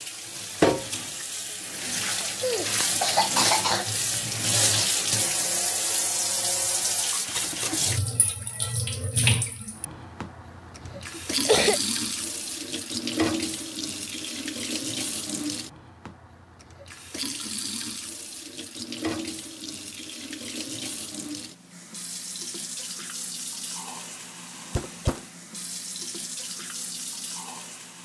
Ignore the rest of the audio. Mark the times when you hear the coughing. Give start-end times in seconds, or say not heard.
2.4-4.0, 10.8-11.8, 24.8-25.2.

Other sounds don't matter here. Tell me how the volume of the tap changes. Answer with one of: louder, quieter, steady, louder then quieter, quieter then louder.
quieter.